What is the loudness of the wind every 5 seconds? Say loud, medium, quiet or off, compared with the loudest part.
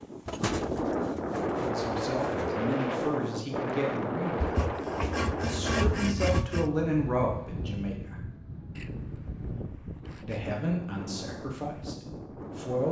loud, medium, medium.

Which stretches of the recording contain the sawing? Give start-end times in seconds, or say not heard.
0.2-2.5, 4.4-6.7, 8.8-10.4.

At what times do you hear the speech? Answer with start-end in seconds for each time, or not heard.
1.6-4.7, 5.3-8.2, 10.2-12.8.